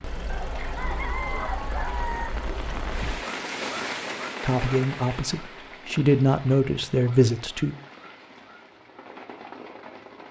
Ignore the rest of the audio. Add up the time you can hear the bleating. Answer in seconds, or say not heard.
not heard.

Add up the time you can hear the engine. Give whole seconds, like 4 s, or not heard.
3 s.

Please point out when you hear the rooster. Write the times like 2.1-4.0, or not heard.
0.2-2.3.